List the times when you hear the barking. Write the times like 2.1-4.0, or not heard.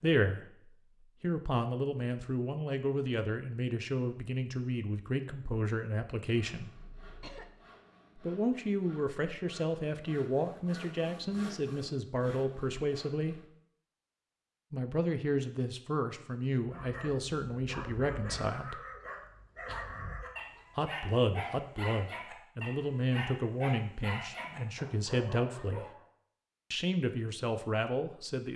16.6-26.1.